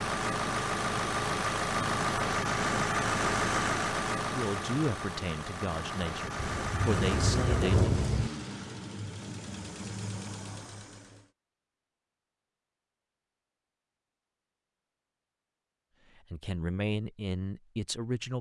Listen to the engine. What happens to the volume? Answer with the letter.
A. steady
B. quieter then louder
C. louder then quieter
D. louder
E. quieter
E.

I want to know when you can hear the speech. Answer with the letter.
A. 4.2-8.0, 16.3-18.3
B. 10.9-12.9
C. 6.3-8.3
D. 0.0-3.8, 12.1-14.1
A.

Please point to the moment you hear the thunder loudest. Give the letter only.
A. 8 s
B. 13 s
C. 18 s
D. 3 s
A.